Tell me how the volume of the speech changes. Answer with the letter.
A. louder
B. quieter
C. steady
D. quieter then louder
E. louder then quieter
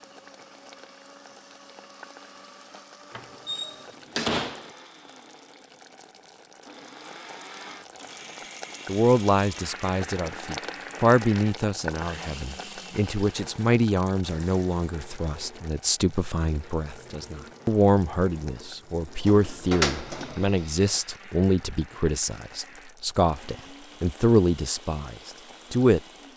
C.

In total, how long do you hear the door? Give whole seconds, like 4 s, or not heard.
3 s.